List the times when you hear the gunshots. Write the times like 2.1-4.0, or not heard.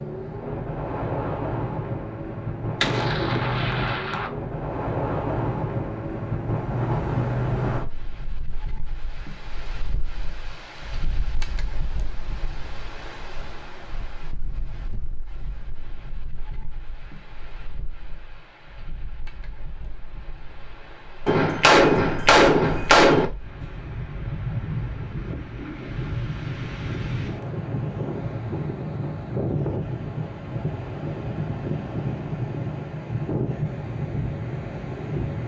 2.8-4.3, 21.2-23.2.